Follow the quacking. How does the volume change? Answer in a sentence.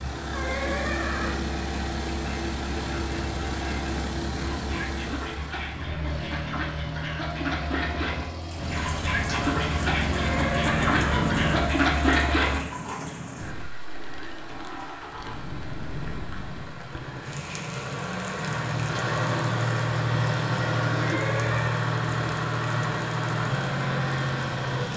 The loudness of the quacking goes up.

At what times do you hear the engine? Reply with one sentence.
You can hear the engine from 0.0 to 11.8 s and from 14.4 to 24.9 s.